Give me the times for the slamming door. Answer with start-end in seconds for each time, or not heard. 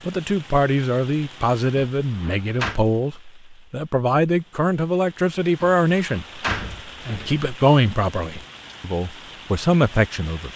1.8-2.8, 5.6-7.5.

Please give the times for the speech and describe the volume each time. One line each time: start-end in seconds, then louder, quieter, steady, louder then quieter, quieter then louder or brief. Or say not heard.
0.1-10.5 steady.